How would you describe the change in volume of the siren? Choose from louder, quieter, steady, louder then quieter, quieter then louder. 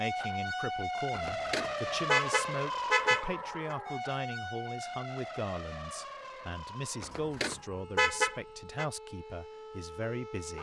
quieter.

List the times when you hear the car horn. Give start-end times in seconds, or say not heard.
1.1-3.8, 7.0-8.8.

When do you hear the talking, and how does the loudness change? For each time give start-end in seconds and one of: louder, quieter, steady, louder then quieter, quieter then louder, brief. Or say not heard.
0.0-10.5 steady.